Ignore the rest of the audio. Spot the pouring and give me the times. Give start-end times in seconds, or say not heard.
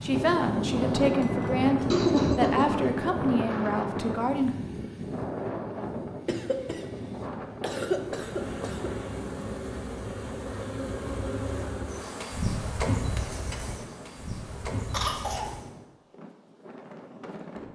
not heard.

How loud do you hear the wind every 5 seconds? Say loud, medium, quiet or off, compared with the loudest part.
loud, medium, quiet, quiet.